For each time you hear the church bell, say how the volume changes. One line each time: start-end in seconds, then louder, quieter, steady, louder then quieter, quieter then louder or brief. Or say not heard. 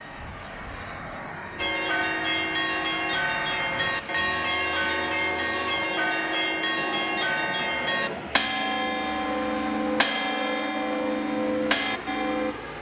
1.6-12.6 steady.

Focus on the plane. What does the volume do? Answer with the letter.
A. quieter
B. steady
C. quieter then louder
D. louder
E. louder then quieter
B.